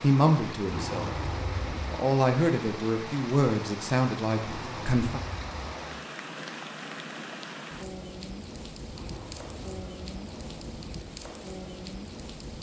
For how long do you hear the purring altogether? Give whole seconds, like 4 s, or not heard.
not heard.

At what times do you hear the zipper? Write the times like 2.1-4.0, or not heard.
0.7-2.0, 4.4-6.0, 8.8-10.9.